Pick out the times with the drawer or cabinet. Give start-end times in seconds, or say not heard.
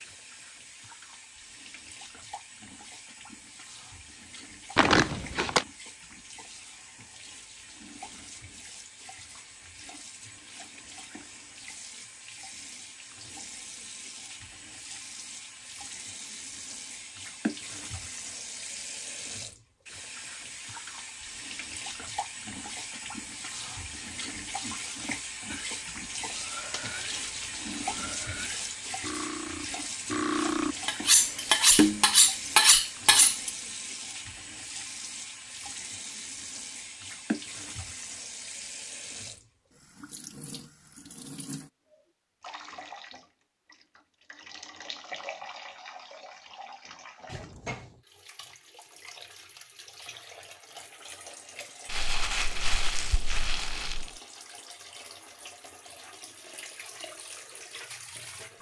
47.2-48.0.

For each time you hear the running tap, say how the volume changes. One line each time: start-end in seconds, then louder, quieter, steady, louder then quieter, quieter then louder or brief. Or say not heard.
0.0-58.5 louder then quieter.